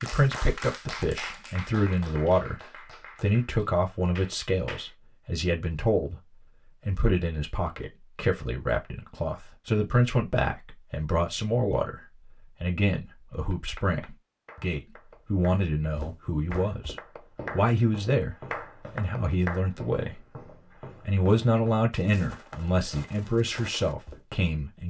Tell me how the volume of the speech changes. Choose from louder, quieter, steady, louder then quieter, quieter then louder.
steady.